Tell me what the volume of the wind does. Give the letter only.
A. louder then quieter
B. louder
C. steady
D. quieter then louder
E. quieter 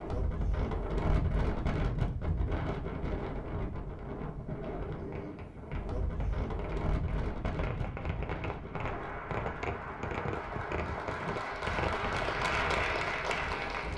E.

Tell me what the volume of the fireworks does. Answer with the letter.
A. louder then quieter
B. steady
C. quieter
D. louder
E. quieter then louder
D.